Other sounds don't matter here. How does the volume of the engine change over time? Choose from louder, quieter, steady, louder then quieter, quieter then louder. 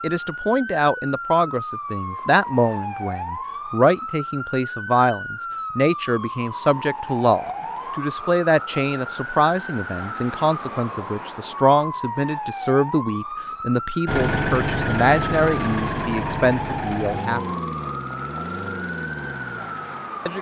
quieter.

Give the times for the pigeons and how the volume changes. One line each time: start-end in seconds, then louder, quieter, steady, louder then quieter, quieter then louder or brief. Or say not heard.
not heard.